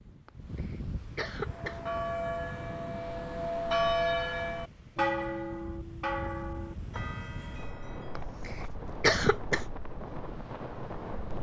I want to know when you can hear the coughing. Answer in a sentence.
The coughing can be heard from 0.2 to 2.0 s and from 8.2 to 9.7 s.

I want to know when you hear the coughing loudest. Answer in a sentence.
The volume of the coughing peaks at 9 seconds.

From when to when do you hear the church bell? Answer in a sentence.
The church bell can be heard from 1.4 to 8.2 s.